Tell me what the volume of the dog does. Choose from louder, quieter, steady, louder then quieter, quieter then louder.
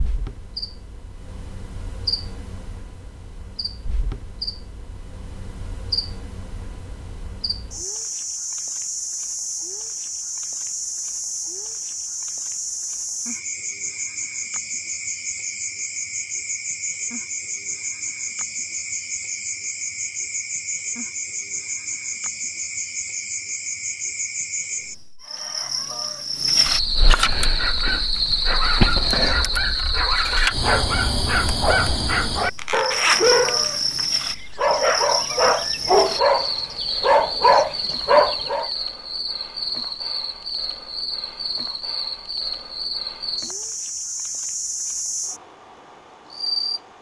louder.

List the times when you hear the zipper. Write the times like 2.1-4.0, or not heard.
32.5-34.0.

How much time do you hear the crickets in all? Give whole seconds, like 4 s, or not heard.
47 s.